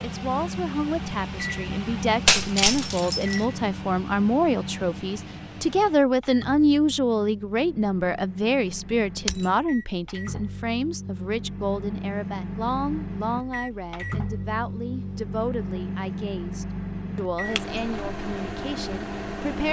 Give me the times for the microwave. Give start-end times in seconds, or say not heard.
0.0-19.6.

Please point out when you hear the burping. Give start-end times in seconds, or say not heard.
not heard.